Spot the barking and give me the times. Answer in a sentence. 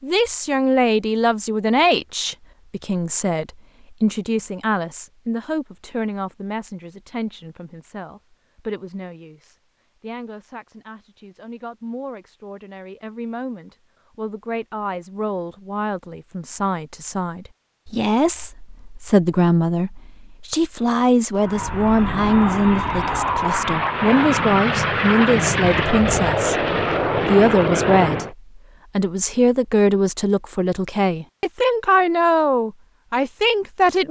The barking can't be heard in this clip.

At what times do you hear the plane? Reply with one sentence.
You can hear the plane from 21.4 to 28.4 s.